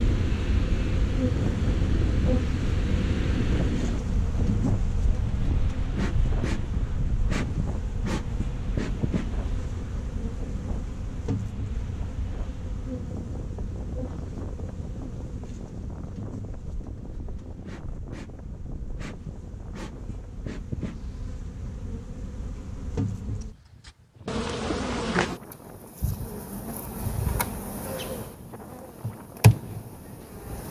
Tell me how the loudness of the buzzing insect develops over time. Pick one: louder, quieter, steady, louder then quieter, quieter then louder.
quieter then louder.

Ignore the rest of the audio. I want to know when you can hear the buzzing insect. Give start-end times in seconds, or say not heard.
0.0-30.6.